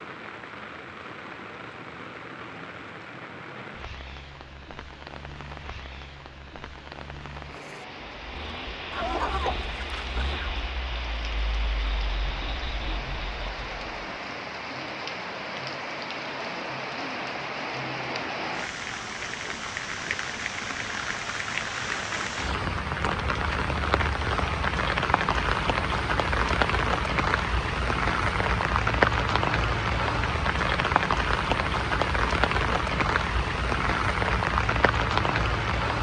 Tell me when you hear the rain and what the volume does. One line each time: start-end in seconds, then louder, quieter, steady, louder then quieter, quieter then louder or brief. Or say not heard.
0.0-35.9 louder.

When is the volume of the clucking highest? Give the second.
9 s.